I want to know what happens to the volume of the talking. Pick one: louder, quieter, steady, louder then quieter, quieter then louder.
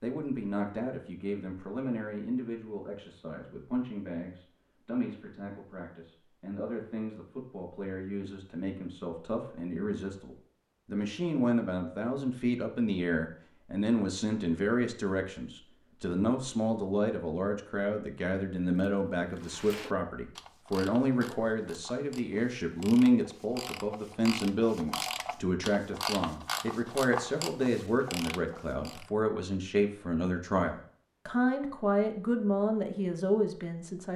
louder.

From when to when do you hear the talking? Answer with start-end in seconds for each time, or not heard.
0.0-34.1.